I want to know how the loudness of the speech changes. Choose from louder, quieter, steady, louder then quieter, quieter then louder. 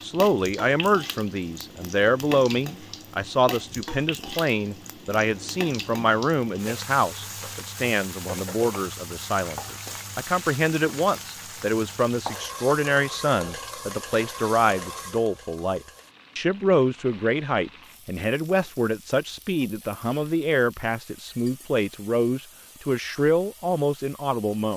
steady.